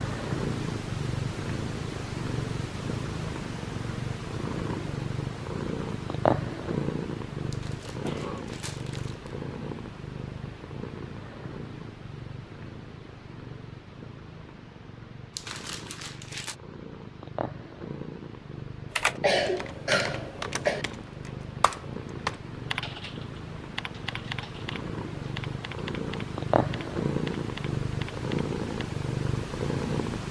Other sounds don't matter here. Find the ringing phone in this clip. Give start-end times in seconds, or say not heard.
not heard.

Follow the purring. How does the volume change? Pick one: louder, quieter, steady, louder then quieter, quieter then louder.
quieter then louder.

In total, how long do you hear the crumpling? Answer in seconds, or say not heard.
3 s.